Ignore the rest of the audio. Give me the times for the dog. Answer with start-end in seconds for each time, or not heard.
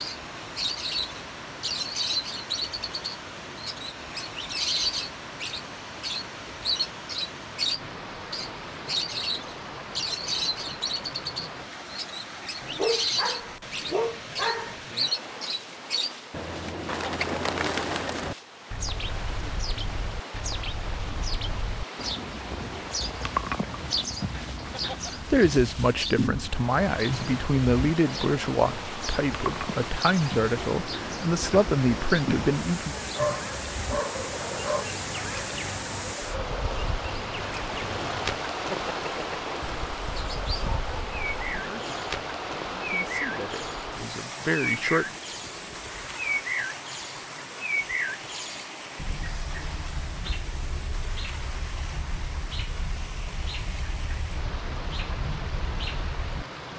12.6-14.8, 33.1-34.9, 39.6-41.6.